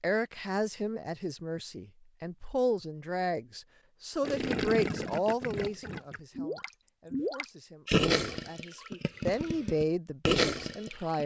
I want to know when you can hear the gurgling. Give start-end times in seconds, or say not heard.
4.2-11.2.